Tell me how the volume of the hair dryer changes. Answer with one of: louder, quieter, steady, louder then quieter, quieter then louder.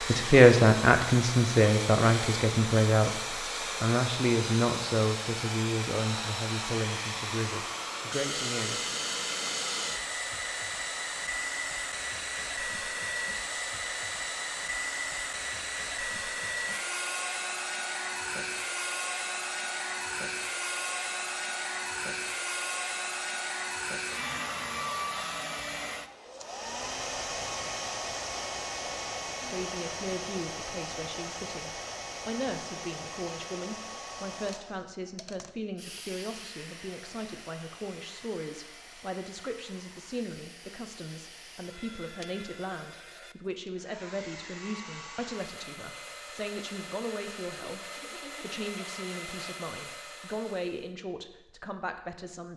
quieter.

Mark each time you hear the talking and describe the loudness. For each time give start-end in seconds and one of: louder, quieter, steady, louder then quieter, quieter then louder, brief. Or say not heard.
0.1-8.9 quieter
29.4-52.5 steady.